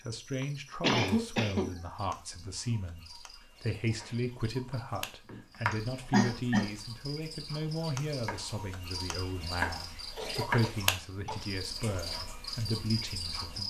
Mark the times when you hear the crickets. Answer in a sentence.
The crickets can be heard from 0.0 to 13.6 s.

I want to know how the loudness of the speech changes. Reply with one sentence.
The volume of the speech stays about the same.